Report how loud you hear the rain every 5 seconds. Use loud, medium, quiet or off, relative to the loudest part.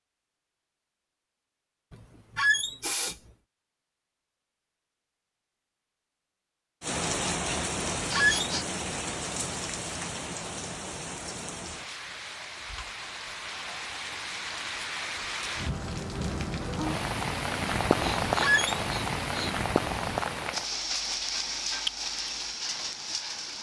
off, loud, medium, loud, loud.